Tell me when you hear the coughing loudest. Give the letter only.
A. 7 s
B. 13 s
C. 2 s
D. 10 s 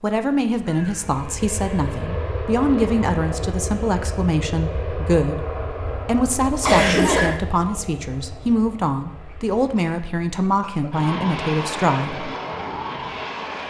A.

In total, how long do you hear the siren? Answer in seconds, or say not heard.
not heard.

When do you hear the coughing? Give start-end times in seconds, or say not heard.
0.7-1.1, 6.6-7.4, 9.3-10.9.